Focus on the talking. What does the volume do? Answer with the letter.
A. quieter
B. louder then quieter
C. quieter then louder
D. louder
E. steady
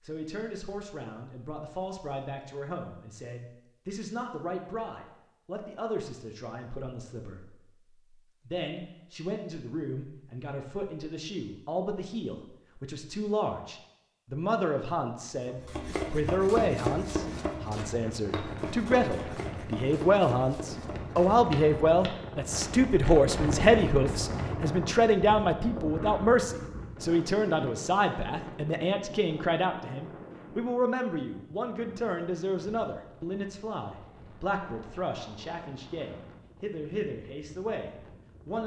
B.